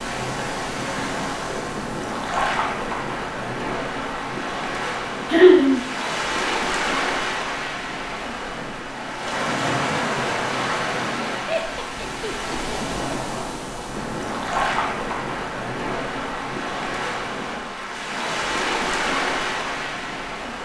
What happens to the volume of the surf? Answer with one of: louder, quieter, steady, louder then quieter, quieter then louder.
steady.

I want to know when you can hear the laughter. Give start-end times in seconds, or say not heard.
5.3-5.8, 11.4-13.0.